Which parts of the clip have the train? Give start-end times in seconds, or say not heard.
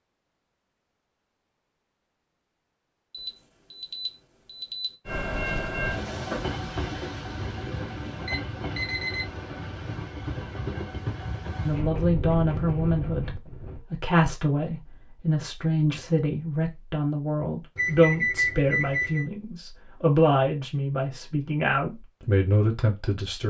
5.0-13.8.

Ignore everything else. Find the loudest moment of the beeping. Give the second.
18 s.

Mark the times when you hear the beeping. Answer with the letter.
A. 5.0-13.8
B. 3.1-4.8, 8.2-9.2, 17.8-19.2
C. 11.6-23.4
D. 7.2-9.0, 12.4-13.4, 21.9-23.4
B.